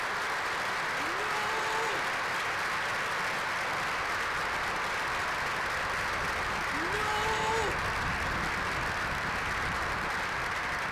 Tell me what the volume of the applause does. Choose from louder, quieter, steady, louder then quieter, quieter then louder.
steady.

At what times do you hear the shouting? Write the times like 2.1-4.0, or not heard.
1.1-2.0, 6.8-7.8.